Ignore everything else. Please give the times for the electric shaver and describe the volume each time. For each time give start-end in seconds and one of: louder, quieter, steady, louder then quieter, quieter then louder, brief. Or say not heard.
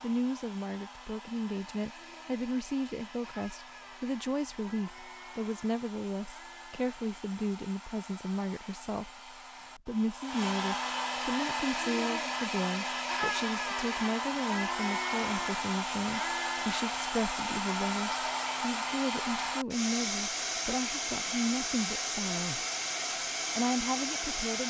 not heard.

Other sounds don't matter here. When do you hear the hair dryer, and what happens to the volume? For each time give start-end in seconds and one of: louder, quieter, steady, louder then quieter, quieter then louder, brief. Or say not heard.
0.0-24.6 louder.